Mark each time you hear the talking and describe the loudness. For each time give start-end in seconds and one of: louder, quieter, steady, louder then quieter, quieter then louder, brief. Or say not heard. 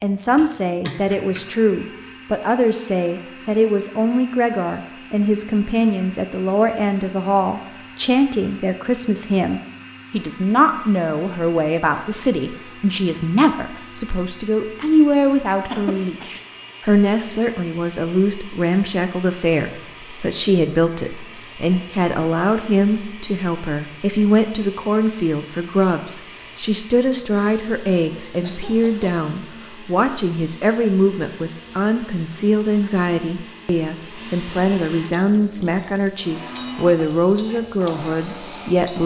0.0-39.0 steady.